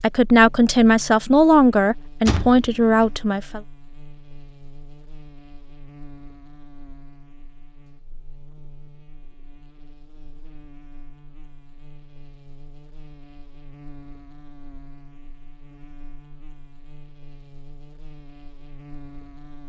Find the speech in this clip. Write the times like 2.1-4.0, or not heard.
0.0-3.6.